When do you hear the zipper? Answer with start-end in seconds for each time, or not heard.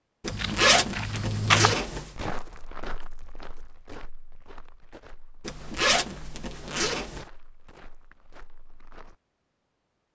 0.2-2.1, 5.5-7.2.